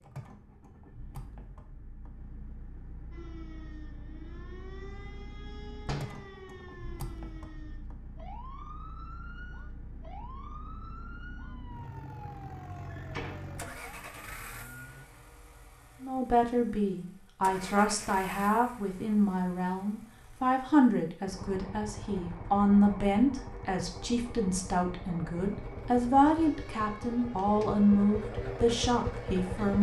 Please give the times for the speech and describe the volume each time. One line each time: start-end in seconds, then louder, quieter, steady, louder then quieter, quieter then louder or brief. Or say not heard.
16.0-29.7 steady.